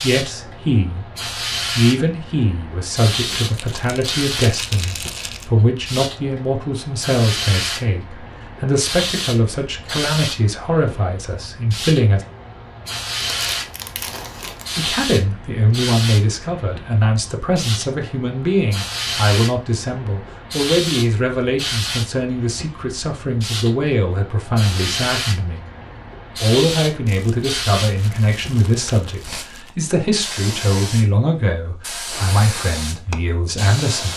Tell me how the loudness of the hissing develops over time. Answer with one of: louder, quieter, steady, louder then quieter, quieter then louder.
steady.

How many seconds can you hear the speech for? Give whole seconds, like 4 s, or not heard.
30 s.